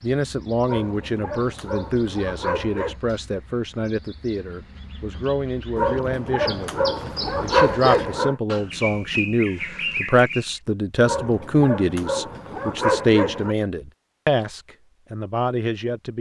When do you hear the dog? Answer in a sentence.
The dog can be heard from 0.7 to 3.0 s, from 5.8 to 8.3 s and from 11.1 to 13.6 s.